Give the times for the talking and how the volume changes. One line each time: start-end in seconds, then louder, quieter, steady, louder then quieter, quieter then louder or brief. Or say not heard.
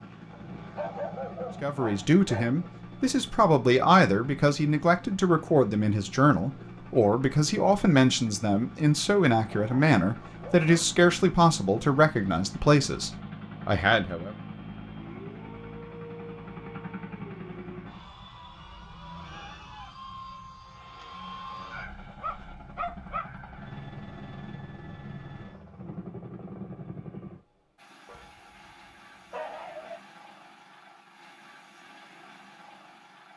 1.6-14.3 steady.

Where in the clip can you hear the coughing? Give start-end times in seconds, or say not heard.
not heard.